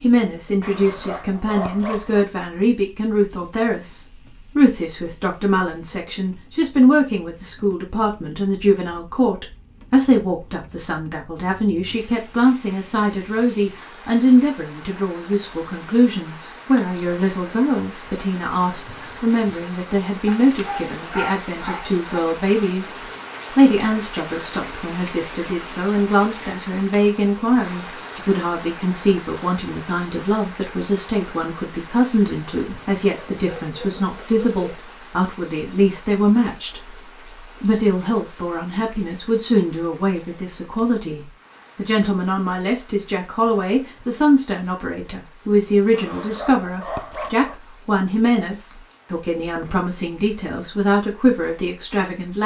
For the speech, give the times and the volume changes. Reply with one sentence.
The speech can be heard from 0.0 to 37.0 s, at a steady volume; and from 37.6 to 52.4 s, at a steady volume.